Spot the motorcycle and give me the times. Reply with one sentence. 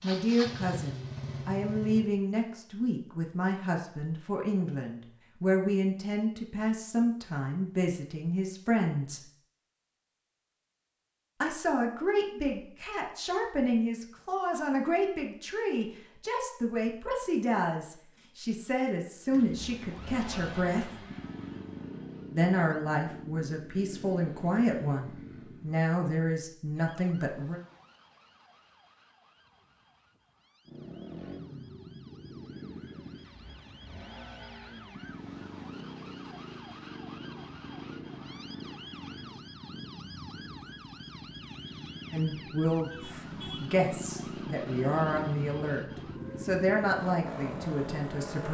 You can hear the motorcycle from 0.0 to 2.1 s, from 19.2 to 25.9 s and from 30.6 to 48.4 s.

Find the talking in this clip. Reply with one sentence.
You can hear the talking from 0.0 to 9.2 s, from 11.4 to 21.1 s, from 22.3 to 27.6 s and from 42.1 to 48.4 s.